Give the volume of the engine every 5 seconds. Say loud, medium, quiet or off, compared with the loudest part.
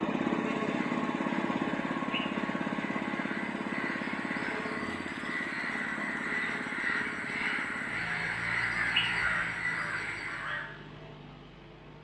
loud, medium, quiet.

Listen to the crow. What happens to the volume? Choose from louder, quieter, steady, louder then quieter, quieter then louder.
louder.